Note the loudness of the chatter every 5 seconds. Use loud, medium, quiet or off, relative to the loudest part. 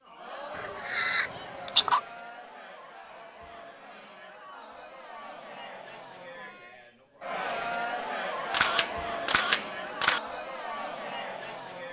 medium, loud, loud.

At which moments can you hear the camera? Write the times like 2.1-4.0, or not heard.
0.5-2.0, 8.5-10.2.